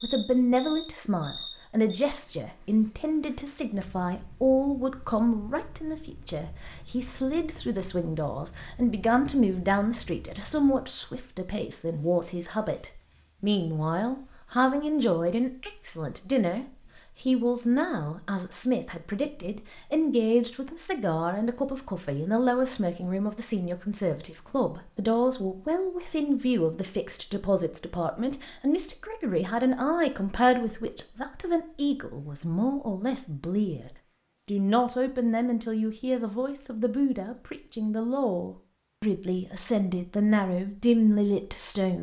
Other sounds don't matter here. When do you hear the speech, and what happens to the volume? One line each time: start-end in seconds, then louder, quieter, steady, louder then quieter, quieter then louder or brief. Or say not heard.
0.0-41.9 steady.